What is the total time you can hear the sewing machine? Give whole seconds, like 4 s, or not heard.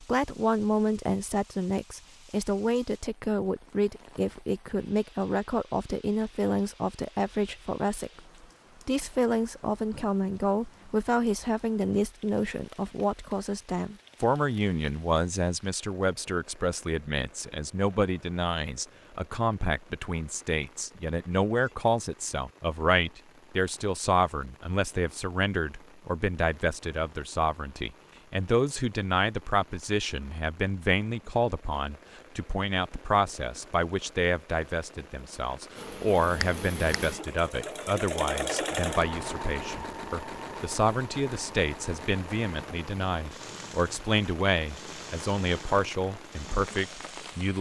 12 s.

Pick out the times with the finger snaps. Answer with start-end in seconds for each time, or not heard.
36.4-37.0.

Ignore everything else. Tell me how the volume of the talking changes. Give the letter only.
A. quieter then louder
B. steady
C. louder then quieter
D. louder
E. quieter
B.